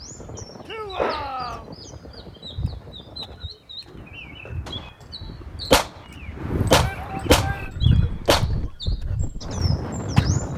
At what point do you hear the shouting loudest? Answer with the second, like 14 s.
1 s.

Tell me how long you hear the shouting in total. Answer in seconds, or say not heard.
2 s.